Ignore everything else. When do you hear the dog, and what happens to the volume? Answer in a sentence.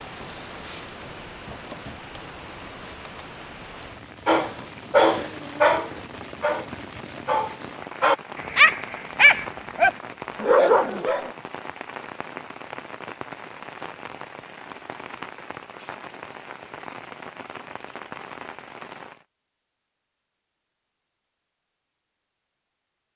You can hear the dog from 4.2 to 11.3 s, getting quieter then louder.